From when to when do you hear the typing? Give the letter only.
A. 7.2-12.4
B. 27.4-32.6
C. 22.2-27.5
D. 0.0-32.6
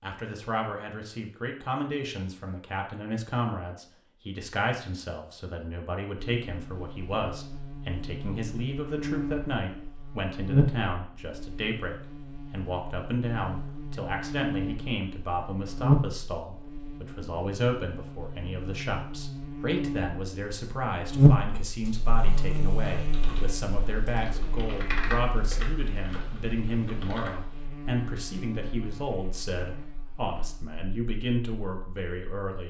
C.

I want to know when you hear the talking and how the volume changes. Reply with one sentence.
You can hear the talking from 0.0 to 32.6 s, at a steady volume.